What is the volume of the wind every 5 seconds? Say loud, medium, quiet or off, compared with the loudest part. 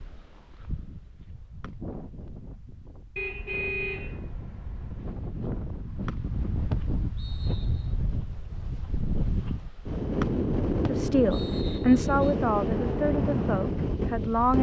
quiet, medium, loud.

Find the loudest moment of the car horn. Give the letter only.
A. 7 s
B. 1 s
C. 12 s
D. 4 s
D.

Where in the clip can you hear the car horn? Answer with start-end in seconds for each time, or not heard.
3.1-5.2.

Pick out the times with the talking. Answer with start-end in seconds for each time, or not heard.
10.8-14.5.